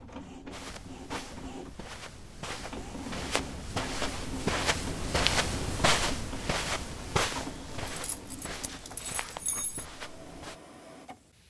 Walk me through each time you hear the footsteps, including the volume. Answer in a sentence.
You can hear the footsteps from 0.5 to 10.6 s, getting louder then quieter.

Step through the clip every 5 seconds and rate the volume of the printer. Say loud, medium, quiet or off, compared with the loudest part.
loud, loud, medium.